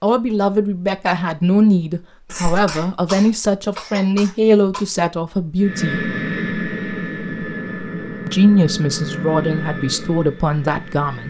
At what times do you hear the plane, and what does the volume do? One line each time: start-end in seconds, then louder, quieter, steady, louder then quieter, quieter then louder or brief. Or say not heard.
5.6-11.2 quieter.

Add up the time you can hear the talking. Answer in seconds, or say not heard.
9 s.